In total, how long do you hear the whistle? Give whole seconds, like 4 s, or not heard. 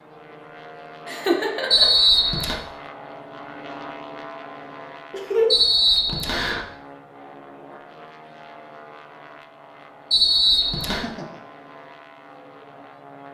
3 s.